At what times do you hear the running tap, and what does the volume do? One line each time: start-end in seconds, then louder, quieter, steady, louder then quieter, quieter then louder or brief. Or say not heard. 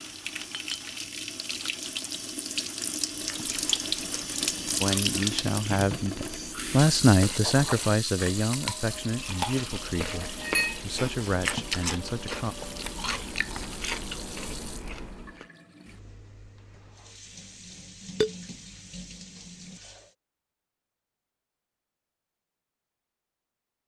0.0-20.1 quieter.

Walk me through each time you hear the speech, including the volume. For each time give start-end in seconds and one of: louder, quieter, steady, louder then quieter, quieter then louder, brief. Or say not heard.
4.8-12.6 louder then quieter.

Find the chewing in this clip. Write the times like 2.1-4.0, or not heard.
3.1-15.4.